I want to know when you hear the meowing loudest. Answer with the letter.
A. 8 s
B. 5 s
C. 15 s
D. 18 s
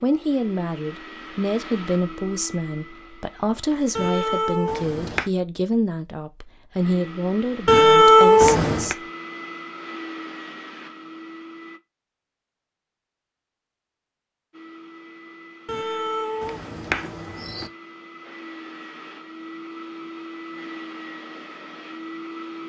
A.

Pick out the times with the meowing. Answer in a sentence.
You can hear the meowing from 4.0 to 5.2 s, from 7.7 to 8.9 s and from 15.7 to 17.7 s.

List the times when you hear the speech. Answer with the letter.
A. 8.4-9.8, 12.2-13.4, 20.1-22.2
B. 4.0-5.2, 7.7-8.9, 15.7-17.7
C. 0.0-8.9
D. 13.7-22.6
C.